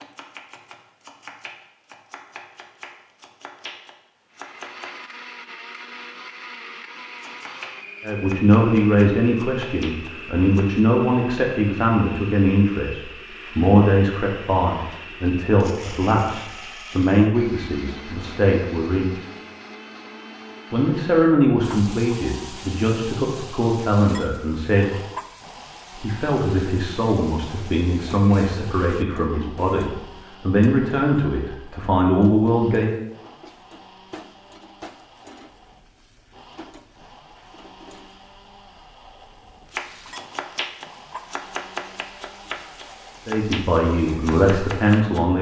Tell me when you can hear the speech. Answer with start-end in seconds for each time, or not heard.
8.0-19.2, 20.7-25.0, 25.9-33.0, 43.2-45.3.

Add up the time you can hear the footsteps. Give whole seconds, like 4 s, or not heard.
not heard.